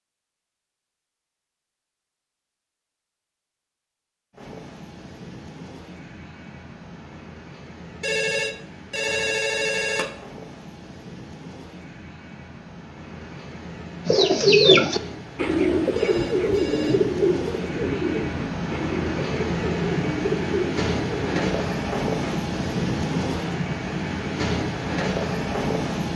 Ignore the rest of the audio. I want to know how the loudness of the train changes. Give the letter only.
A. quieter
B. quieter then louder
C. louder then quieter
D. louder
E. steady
D.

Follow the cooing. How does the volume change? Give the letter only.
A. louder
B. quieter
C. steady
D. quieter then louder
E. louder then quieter
B.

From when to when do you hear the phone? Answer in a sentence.
The phone can be heard from 8.0 to 10.1 s and from 15.9 to 17.0 s.